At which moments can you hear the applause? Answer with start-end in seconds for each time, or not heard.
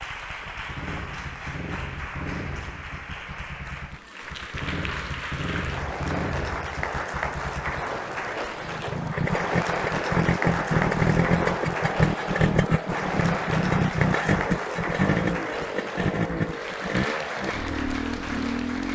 0.0-18.9.